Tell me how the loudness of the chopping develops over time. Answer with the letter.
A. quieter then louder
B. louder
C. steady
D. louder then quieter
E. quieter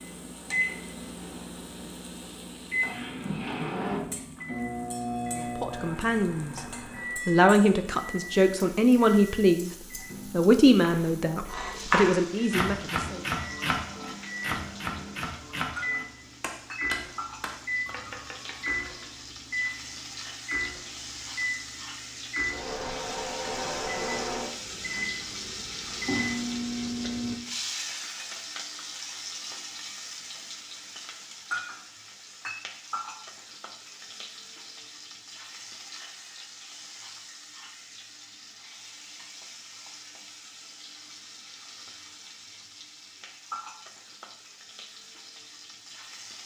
E.